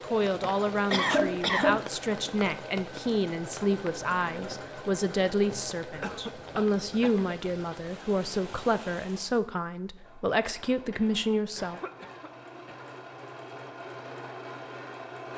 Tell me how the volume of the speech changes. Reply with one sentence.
The volume of the speech stays about the same.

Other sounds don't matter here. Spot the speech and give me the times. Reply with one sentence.
You can hear the speech from 0.0 to 11.8 s.